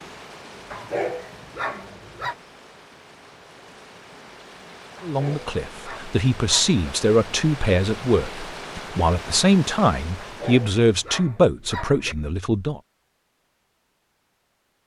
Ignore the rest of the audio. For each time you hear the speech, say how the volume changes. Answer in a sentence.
The speech can be heard from 5.0 to 12.8 s, at a steady volume.